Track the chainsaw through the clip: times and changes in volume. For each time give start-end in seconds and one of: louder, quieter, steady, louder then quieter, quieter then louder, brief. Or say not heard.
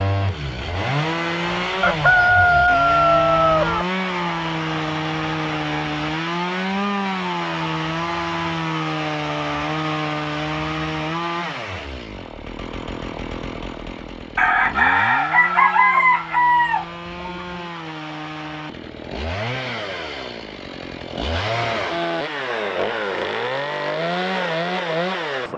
0.0-25.5 quieter then louder.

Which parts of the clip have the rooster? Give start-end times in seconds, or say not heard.
1.8-3.9, 14.3-17.6.